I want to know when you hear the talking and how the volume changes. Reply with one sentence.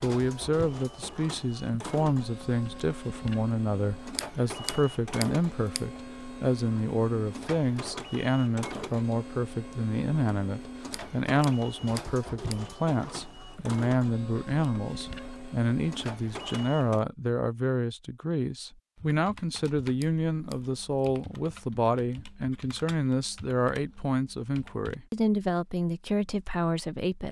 You can hear the talking from 0.0 to 27.2 s, at a steady volume.